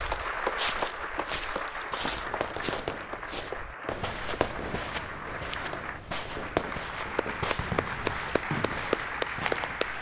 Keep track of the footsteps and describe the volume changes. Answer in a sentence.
The loudness of the footsteps goes down.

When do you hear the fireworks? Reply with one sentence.
The fireworks can be heard from 2.1 to 9.8 s.